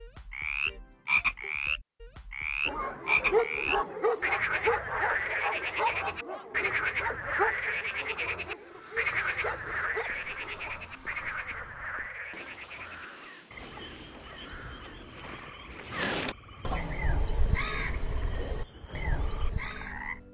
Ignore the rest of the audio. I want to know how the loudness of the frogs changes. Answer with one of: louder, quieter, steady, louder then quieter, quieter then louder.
quieter.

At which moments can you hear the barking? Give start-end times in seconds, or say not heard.
2.6-10.7.